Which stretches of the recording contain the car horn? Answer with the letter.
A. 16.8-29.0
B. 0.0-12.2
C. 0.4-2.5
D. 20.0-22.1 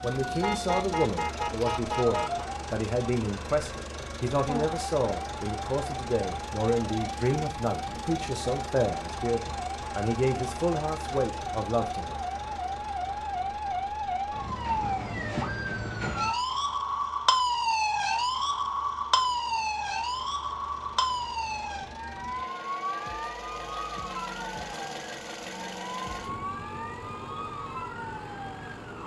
C.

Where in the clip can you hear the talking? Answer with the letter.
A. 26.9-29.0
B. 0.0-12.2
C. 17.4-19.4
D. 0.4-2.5
B.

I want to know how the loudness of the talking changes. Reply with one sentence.
The loudness of the talking stays about the same.